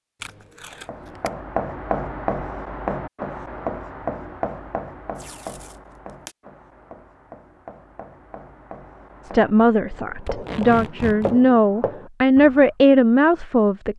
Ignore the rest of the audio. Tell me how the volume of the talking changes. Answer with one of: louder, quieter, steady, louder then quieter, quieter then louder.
louder.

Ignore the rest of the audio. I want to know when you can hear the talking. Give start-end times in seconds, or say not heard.
9.2-13.9.